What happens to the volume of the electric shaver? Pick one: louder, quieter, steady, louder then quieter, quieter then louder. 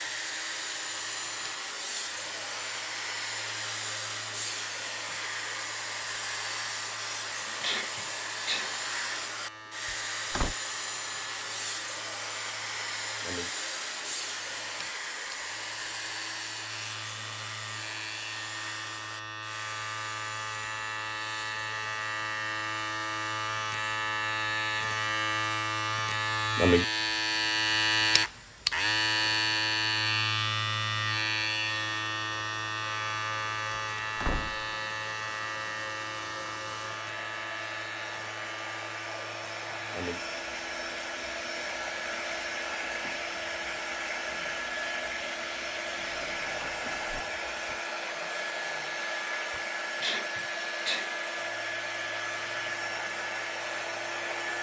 louder then quieter.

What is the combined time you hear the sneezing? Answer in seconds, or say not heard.
2 s.